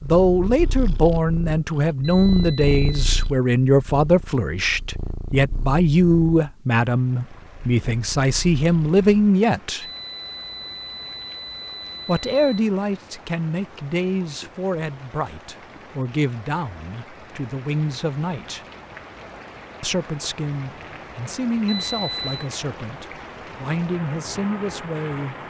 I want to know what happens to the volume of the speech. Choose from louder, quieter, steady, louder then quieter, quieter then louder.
quieter.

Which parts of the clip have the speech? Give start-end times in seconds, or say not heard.
0.0-9.8, 12.1-18.6, 19.8-25.4.